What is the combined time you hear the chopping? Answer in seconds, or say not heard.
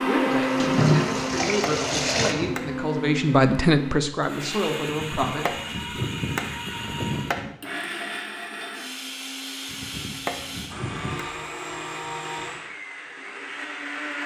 6 s.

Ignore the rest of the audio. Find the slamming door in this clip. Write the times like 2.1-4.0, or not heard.
not heard.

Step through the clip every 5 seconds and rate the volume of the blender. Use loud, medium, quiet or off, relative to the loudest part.
loud, medium, medium.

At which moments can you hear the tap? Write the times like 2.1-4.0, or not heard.
0.3-2.4.